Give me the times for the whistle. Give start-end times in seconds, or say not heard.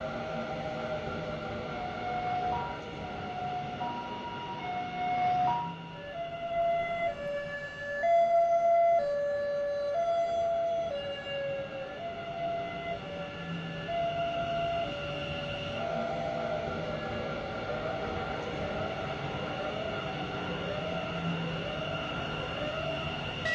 not heard.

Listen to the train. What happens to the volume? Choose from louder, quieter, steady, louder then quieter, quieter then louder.
quieter then louder.